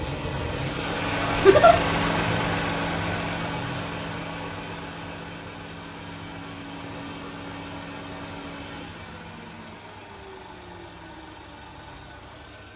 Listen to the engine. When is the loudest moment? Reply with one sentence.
The loudest moment of the engine is at 2 seconds.